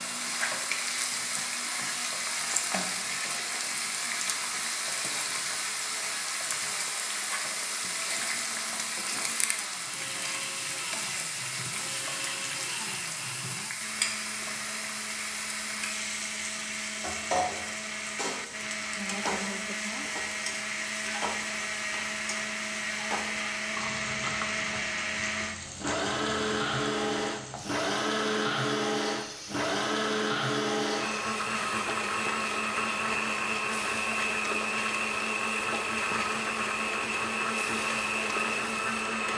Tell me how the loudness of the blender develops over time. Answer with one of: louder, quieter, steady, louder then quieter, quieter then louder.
louder.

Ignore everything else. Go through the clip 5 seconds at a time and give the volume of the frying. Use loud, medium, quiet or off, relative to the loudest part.
loud, loud, loud, loud, medium, medium, medium, medium.